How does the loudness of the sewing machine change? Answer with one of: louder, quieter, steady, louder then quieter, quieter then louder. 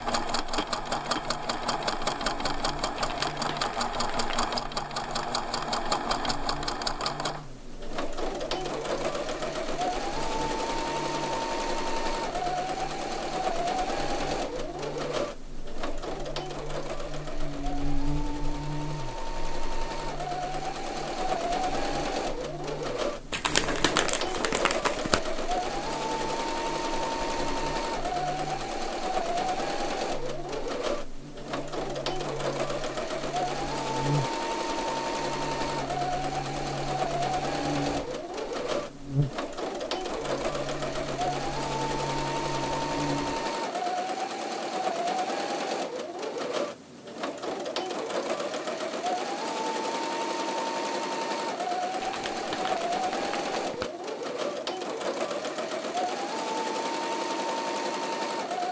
steady.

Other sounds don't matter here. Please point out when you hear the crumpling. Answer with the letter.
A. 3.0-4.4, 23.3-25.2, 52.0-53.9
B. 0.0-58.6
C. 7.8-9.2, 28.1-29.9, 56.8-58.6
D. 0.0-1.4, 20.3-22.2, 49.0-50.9
A.